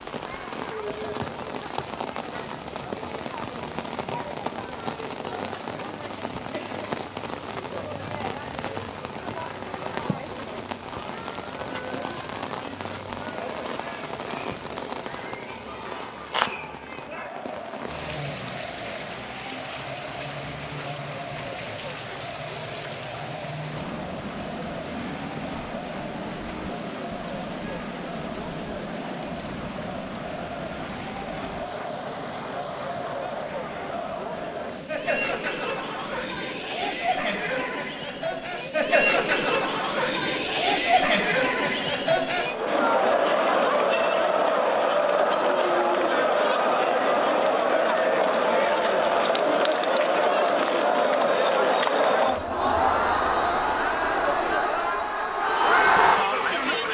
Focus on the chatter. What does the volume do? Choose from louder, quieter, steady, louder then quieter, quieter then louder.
louder.